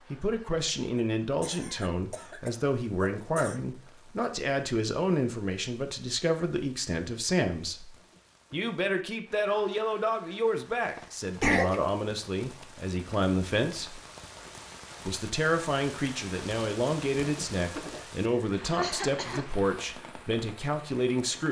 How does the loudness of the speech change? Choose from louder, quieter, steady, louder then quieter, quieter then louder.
steady.